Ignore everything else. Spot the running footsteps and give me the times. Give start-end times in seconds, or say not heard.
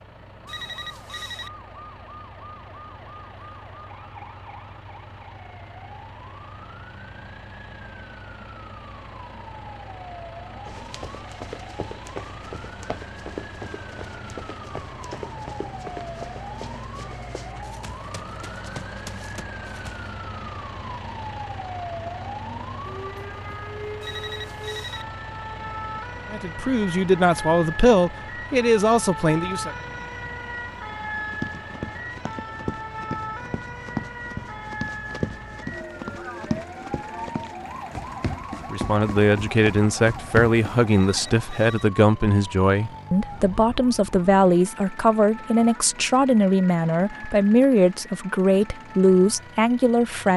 10.7-20.1, 31.3-40.8.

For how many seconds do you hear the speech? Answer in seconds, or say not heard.
15 s.